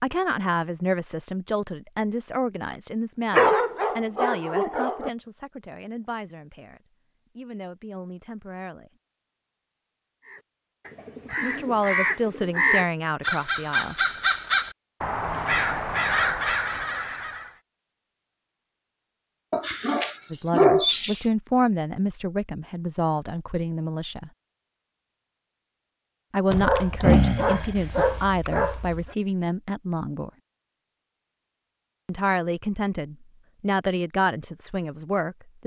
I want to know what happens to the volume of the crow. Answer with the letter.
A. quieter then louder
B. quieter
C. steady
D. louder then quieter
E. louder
E.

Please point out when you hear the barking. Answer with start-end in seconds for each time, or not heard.
3.3-5.1, 19.5-21.2, 26.5-29.1.